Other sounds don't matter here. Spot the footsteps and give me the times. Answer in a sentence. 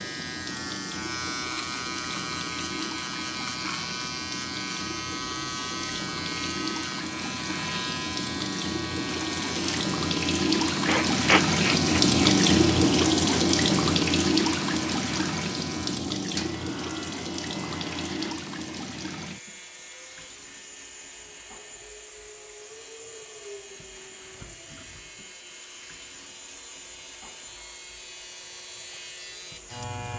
You can't hear the footsteps here.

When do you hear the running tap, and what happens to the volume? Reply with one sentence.
The running tap can be heard from 0.0 to 30.1 s, getting louder then quieter.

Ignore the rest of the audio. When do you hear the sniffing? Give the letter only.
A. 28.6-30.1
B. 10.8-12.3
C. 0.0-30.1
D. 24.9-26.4
B.